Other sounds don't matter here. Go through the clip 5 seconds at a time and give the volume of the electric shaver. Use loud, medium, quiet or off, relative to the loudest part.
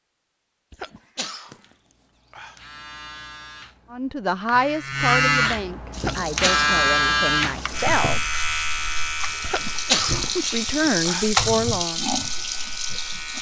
quiet, loud, quiet.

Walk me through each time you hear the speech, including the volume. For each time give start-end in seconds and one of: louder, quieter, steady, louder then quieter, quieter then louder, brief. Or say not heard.
3.9-8.2 quieter
10.3-12.1 brief.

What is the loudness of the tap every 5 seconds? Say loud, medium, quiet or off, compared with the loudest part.
off, medium, loud.